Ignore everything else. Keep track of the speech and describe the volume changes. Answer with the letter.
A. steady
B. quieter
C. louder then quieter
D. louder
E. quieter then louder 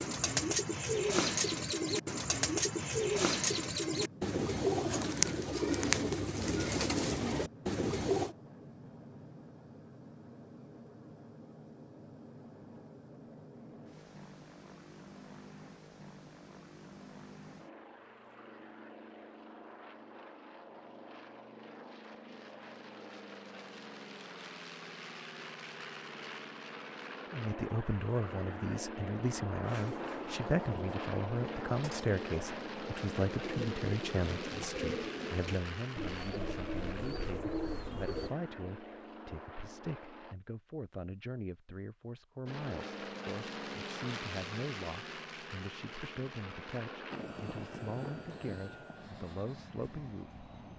B.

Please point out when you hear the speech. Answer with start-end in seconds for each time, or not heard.
27.3-50.7.